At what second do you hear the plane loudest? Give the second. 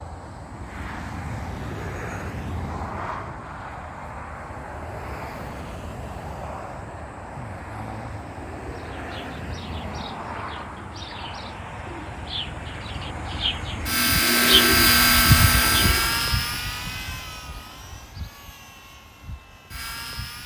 15 s.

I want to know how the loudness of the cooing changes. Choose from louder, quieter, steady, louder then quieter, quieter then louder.
louder.